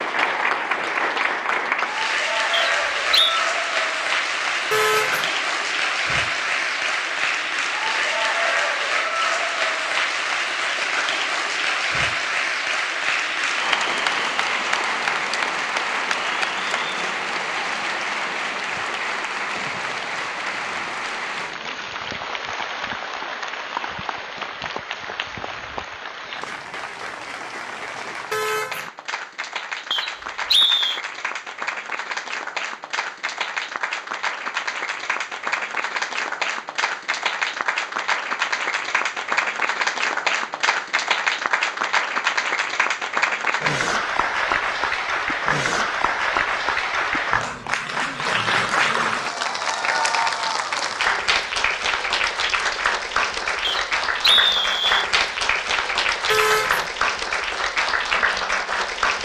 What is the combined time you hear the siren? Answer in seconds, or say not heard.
not heard.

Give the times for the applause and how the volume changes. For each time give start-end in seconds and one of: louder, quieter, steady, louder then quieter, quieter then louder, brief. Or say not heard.
0.0-59.2 quieter then louder.